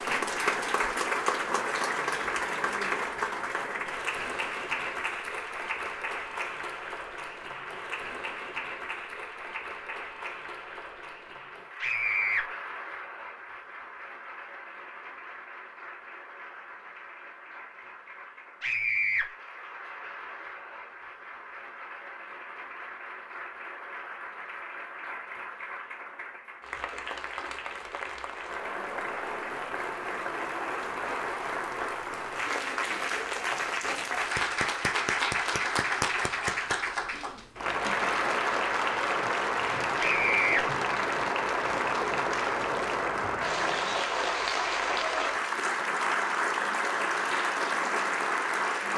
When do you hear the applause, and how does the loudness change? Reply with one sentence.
You can hear the applause from 0.0 to 48.9 s, getting quieter then louder.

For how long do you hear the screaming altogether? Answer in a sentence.
You can hear the screaming for 2 seconds altogether.